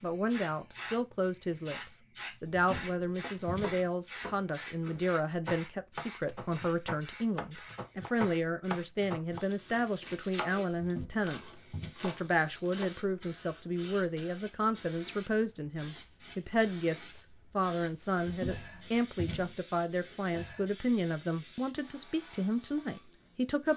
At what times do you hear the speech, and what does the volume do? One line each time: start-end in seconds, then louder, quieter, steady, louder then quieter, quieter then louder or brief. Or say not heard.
0.0-23.7 steady.